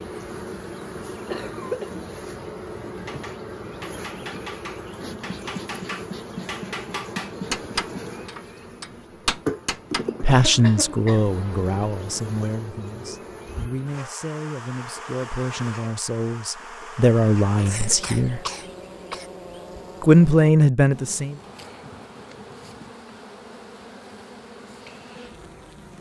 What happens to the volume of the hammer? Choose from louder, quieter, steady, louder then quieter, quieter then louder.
louder.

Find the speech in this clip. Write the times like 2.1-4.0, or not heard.
10.2-18.4, 20.0-21.4.